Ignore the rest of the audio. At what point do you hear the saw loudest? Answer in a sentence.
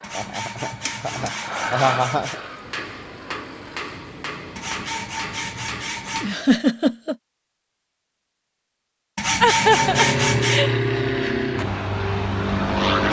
The loudest moment of the saw is at 10 seconds.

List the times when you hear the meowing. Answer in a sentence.
The meowing can't be heard in this clip.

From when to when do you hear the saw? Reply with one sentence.
You can hear the saw from 0.0 to 2.4 s, from 4.5 to 6.4 s and from 9.2 to 10.7 s.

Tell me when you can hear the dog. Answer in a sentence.
The dog can't be heard in this clip.